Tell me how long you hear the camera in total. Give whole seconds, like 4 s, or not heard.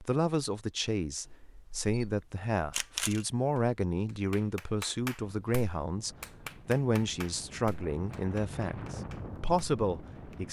2 s.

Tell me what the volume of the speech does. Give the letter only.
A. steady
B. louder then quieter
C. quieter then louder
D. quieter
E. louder
A.